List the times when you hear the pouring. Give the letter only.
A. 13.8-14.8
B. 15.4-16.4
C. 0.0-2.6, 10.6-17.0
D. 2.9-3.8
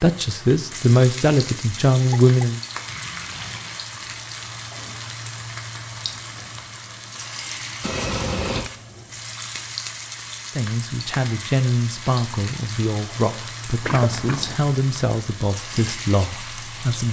D.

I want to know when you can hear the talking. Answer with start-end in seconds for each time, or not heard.
0.0-2.6, 10.6-17.0.